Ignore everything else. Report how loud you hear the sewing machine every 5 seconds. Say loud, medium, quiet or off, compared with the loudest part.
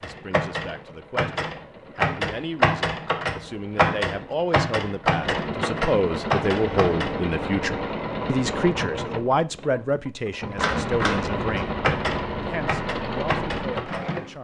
quiet, loud, loud.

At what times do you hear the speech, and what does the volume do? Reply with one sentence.
You can hear the speech from 0.0 to 14.3 s, getting louder then quieter.